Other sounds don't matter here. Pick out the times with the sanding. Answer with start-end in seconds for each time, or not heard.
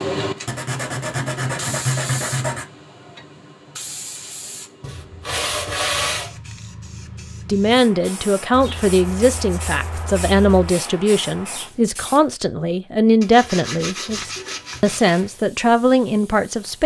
0.5-2.6, 4.8-6.3, 8.5-10.7, 13.2-15.0.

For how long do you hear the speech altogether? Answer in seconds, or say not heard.
9 s.